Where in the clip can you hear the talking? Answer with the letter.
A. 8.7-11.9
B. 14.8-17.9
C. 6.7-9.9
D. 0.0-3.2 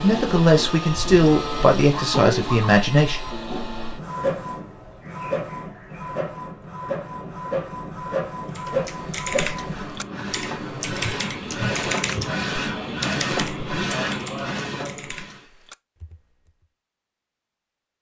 D.